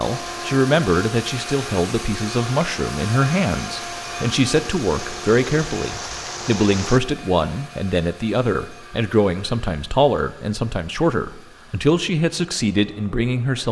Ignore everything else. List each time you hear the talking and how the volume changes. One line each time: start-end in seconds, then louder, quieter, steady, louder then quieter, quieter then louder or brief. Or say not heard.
0.0-13.6 steady.